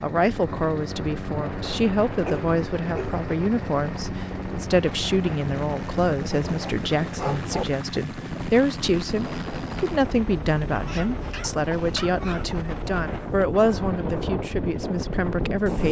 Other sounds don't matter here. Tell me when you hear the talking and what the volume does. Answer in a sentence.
You can hear the talking from 0.0 to 15.8 s, at a steady volume.